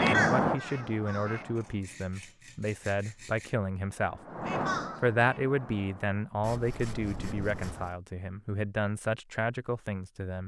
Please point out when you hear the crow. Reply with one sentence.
You can hear the crow from 0.0 to 1.9 s and from 4.0 to 6.2 s.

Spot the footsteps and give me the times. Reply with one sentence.
The footsteps can't be heard in this clip.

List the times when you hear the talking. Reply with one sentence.
You can hear the talking from 0.1 to 4.2 s and from 5.0 to 10.4 s.